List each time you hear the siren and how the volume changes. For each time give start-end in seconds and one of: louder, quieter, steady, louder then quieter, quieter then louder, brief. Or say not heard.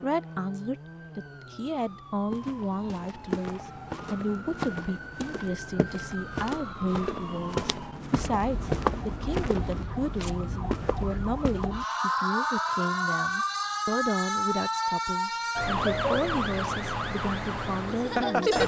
0.0-18.6 louder.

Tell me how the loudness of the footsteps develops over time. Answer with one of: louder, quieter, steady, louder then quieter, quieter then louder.
louder then quieter.